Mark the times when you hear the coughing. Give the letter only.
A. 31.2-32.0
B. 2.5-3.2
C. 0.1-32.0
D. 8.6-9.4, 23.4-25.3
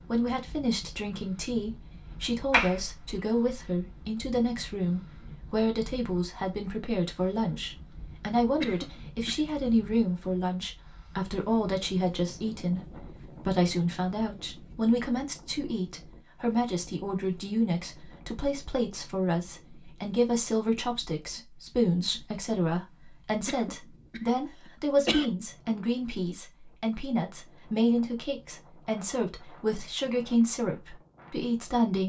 D.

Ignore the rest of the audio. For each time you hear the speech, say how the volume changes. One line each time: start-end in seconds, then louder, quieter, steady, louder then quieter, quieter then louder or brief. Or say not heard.
0.1-32.0 steady.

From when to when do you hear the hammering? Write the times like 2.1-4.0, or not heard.
not heard.